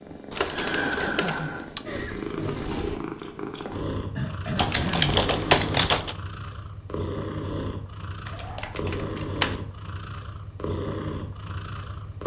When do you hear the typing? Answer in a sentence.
The typing can be heard from 0.3 to 1.9 s, from 4.5 to 6.2 s and from 8.2 to 9.6 s.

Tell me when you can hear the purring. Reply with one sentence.
You can hear the purring from 0.0 to 12.2 s.